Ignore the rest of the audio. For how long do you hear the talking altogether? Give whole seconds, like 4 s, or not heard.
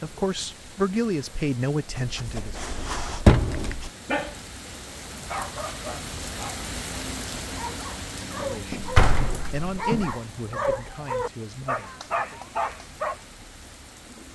7 s.